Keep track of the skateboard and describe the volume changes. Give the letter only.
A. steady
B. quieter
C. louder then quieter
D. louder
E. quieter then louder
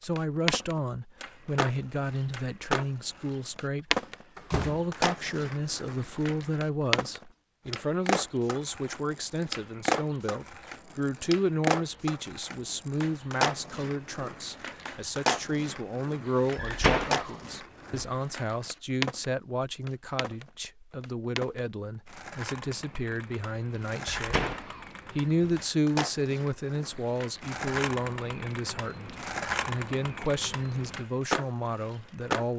E.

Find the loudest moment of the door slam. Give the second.
17 s.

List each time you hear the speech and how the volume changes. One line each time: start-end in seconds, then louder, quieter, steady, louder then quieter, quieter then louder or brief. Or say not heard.
0.0-32.5 steady.